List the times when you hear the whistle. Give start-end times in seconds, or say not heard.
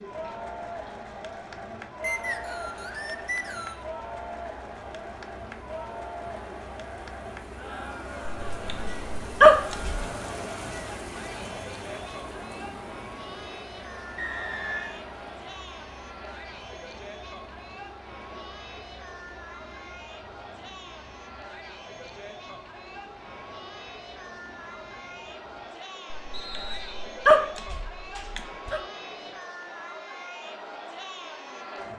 2.0-3.9, 14.2-15.0, 26.3-27.2.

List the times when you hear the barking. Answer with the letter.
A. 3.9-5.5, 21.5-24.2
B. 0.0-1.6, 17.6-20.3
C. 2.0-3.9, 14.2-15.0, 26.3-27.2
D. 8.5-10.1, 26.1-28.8
D.